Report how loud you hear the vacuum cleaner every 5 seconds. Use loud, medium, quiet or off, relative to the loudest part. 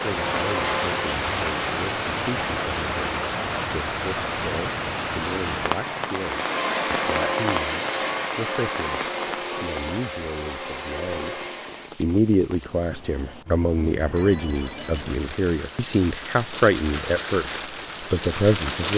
loud, loud, medium, off.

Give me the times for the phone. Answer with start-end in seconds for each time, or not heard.
14.0-15.2.